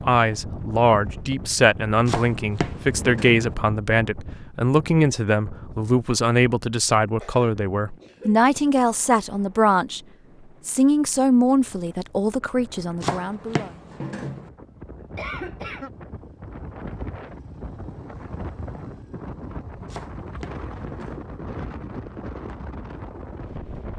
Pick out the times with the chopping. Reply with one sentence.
The chopping can be heard from 2.0 to 3.5 s, from 13.0 to 14.5 s and from 19.9 to 21.2 s.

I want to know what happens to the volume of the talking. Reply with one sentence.
The loudness of the talking stays about the same.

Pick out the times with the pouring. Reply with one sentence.
You can't hear the pouring here.